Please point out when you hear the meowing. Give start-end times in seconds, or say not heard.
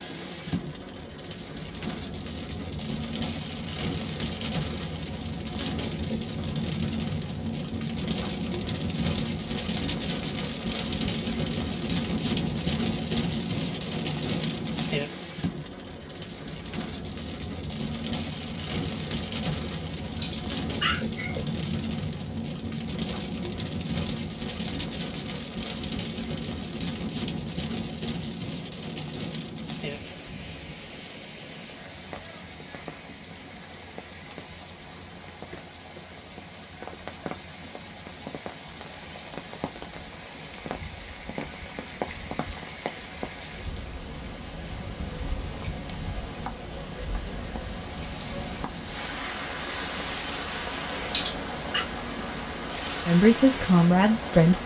20.1-21.8, 51.0-51.9.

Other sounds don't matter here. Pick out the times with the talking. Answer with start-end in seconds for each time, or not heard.
53.0-54.6.